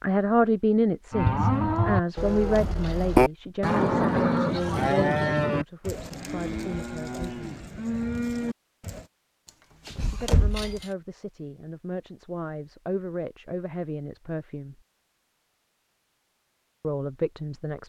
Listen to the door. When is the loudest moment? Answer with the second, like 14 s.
10 s.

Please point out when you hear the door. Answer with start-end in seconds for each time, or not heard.
2.1-3.1, 9.8-10.8.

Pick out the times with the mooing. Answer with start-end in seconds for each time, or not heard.
1.1-9.1.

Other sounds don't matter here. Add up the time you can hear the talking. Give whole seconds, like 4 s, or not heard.
13 s.